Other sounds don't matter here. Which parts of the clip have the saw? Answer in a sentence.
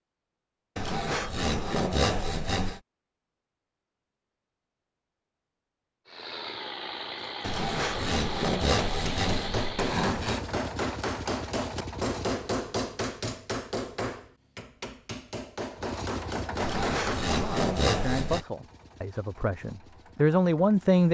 The saw can be heard from 0.8 to 2.8 s, from 7.4 to 10.4 s and from 16.6 to 18.4 s.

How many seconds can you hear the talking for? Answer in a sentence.
The talking can be heard for 4 seconds in total.